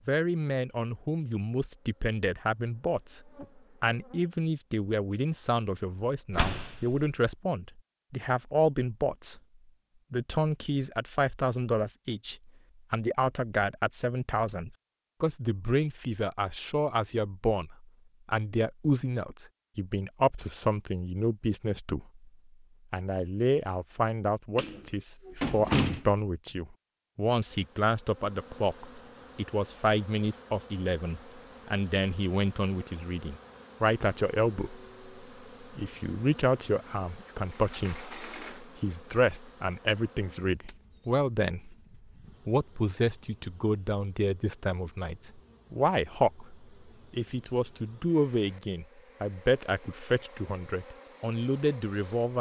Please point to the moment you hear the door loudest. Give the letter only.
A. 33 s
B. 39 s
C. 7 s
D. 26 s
D.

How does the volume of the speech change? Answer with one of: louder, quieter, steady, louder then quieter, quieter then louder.
steady.